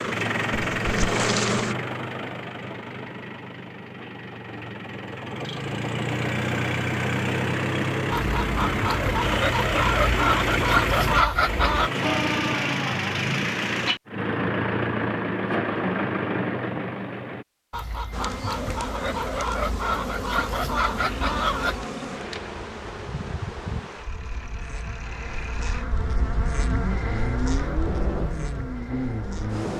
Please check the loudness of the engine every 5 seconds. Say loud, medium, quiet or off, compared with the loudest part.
medium, loud, loud, loud, quiet, medium.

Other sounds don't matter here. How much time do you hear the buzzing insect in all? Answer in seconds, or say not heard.
13 s.